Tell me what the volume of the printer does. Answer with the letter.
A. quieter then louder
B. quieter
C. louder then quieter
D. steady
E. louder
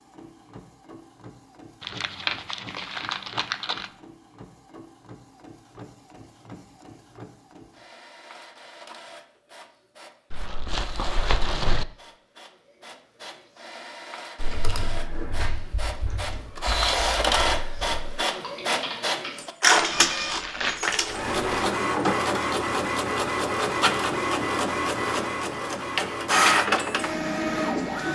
E.